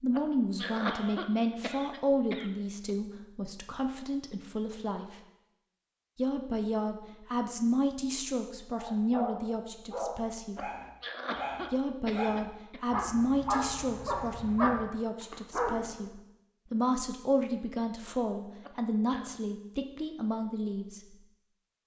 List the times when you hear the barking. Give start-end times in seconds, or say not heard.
8.8-16.1.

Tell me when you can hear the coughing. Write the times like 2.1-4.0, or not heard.
0.1-3.0, 10.6-12.8, 18.6-19.4.